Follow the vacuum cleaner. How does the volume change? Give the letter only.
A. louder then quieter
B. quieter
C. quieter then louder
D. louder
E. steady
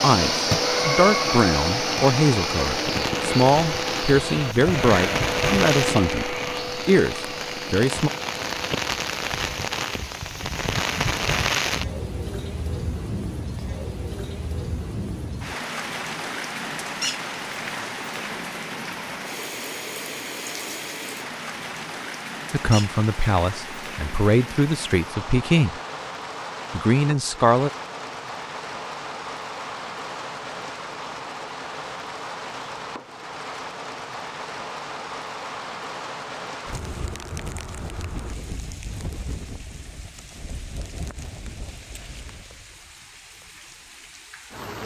B.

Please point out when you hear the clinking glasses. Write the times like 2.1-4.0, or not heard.
not heard.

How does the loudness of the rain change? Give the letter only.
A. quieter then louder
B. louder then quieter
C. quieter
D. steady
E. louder
C.